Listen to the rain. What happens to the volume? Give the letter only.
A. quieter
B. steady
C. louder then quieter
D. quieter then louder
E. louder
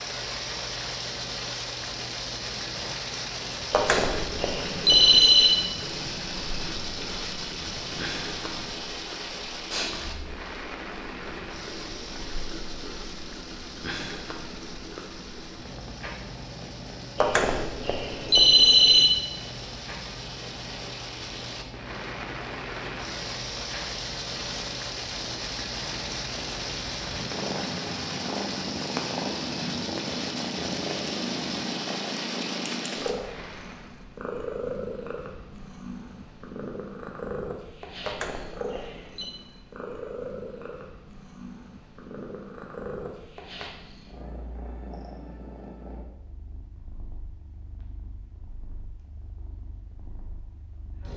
D.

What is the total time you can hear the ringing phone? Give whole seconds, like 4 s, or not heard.
5 s.